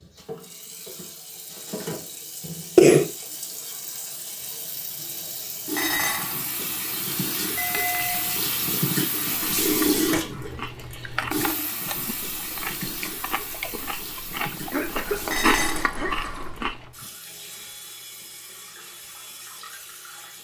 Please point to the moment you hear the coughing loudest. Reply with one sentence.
The volume of the coughing peaks at 3 seconds.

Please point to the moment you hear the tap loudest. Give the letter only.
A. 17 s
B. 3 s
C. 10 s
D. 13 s
C.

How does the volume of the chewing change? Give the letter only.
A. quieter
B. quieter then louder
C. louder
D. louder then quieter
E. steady
C.